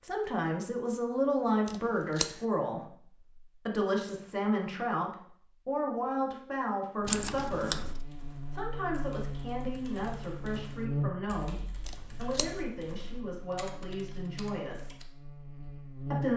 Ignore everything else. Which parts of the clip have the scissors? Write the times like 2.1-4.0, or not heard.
1.6-2.4, 7.0-8.0, 11.8-12.6.